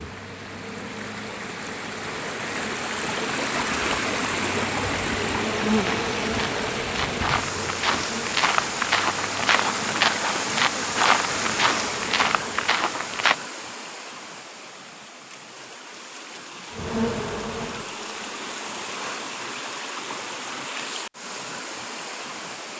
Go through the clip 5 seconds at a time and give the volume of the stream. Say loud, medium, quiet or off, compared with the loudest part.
loud, loud, loud, medium, medium.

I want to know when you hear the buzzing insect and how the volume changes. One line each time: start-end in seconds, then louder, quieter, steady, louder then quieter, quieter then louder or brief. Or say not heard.
0.0-12.8 louder then quieter
16.7-19.4 brief.